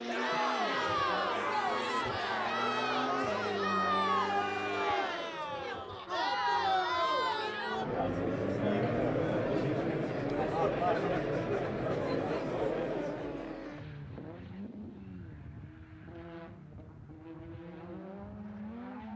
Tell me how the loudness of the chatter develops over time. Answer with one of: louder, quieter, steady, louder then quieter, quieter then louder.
steady.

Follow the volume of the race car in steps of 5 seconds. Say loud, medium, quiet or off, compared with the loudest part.
loud, loud, loud, medium.